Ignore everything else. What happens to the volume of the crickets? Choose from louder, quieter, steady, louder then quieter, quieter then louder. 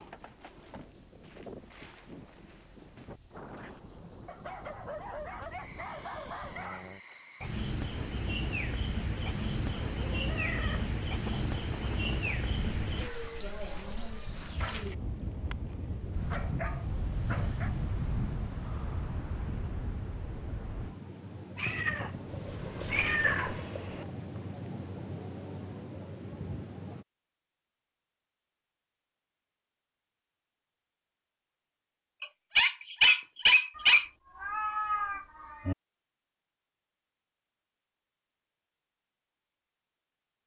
louder.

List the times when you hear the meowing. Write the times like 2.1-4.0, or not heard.
9.2-10.9, 21.6-24.1, 33.8-35.8.